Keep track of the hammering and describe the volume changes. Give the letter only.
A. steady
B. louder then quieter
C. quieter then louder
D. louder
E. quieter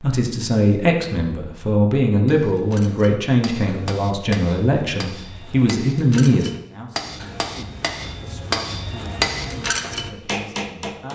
D.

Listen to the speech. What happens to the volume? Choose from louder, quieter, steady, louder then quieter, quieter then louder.
quieter.